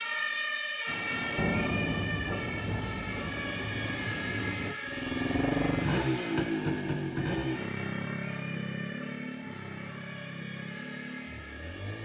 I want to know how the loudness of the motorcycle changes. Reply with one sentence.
The loudness of the motorcycle goes down.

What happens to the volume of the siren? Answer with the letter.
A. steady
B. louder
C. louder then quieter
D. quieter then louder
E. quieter
E.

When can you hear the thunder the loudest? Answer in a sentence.
The loudest moment of the thunder is at 2 seconds.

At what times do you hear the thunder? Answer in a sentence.
You can hear the thunder from 0.8 to 4.8 s.